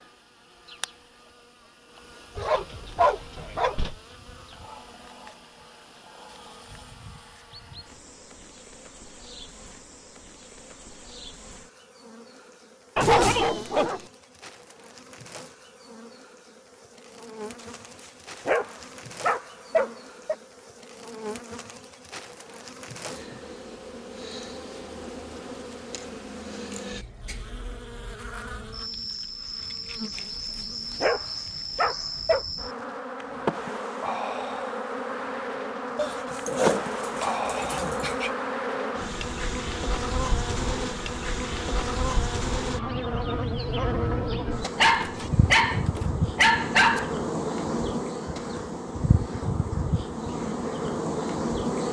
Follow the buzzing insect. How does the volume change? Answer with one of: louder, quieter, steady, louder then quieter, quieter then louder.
louder.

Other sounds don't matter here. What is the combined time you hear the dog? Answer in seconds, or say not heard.
11 s.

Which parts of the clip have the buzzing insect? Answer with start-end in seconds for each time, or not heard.
0.0-51.8.